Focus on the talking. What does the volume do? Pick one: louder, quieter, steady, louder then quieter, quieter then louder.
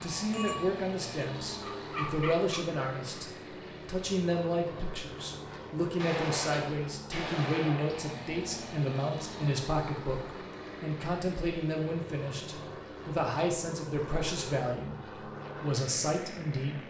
steady.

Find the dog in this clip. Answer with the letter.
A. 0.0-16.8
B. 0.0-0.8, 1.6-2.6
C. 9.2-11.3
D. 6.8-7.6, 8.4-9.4
B.